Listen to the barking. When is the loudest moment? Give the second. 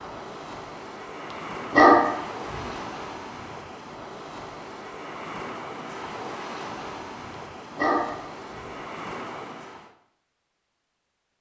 2 s.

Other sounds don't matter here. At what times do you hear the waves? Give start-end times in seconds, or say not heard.
0.0-9.9.